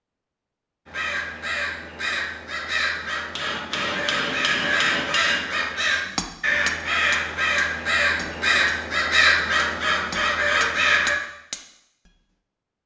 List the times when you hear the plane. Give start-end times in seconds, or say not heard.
not heard.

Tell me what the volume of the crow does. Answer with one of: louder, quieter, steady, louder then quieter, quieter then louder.
louder.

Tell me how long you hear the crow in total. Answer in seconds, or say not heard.
10 s.